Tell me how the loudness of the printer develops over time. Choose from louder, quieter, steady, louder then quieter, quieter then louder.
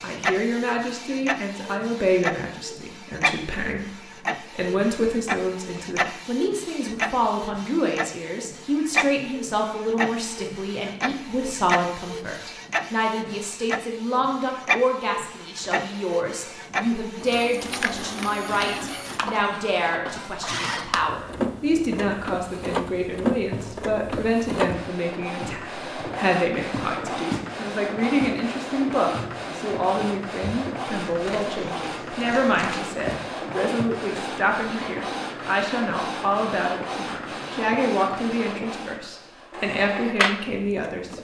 steady.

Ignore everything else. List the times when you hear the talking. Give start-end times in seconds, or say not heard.
0.0-41.1.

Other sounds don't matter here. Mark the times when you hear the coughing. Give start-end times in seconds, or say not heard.
not heard.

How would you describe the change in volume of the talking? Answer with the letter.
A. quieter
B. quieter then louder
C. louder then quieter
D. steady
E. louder
D.